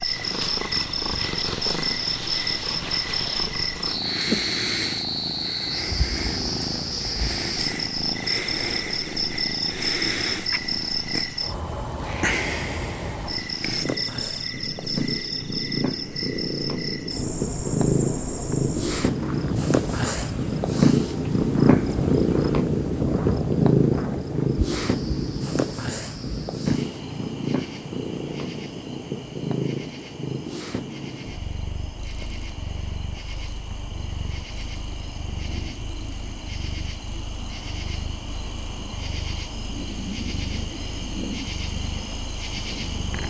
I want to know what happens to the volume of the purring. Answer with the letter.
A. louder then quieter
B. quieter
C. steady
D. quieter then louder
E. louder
A.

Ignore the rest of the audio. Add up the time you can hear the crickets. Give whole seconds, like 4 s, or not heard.
43 s.